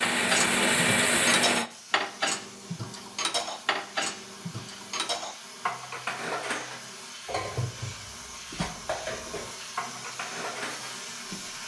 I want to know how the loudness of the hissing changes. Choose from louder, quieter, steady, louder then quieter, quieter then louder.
louder.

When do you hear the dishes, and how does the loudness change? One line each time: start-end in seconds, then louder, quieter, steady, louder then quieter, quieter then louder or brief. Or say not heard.
0.0-11.5 quieter.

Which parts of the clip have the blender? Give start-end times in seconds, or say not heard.
0.0-1.7.